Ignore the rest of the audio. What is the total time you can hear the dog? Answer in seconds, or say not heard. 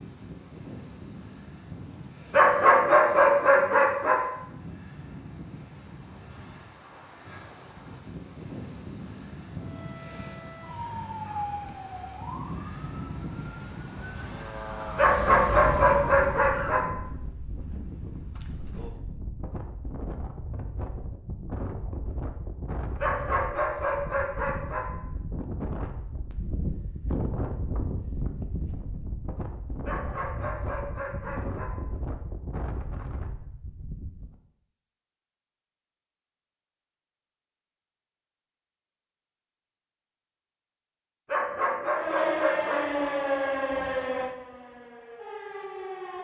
9 s.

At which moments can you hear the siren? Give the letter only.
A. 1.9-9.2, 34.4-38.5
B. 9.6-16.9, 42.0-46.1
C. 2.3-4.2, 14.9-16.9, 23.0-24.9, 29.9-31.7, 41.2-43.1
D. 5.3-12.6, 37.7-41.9
B.